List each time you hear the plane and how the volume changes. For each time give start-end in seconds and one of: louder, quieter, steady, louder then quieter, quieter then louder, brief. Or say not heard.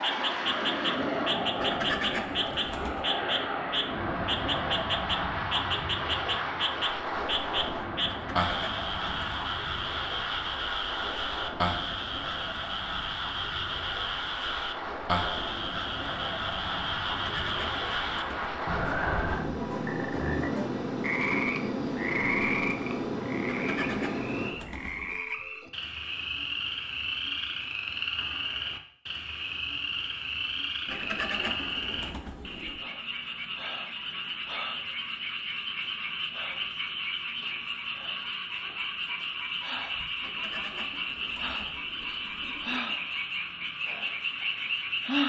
0.0-24.6 quieter then louder.